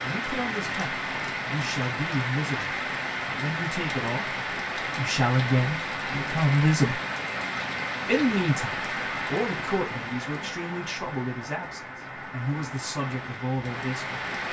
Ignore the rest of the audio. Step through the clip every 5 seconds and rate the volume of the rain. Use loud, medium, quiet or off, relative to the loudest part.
loud, loud, medium.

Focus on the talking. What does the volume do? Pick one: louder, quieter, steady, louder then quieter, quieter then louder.
louder then quieter.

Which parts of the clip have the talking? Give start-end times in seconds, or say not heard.
0.0-7.0, 8.1-14.2.